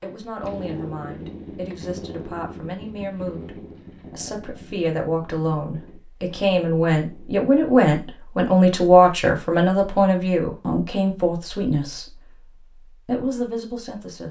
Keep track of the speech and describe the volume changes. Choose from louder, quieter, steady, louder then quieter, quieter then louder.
louder then quieter.